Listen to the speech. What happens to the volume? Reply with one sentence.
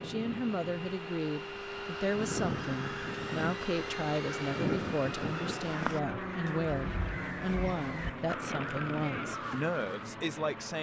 The volume of the speech stays about the same.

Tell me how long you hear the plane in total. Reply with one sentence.
The plane can be heard for 11 seconds in total.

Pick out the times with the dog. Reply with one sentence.
You can't hear the dog here.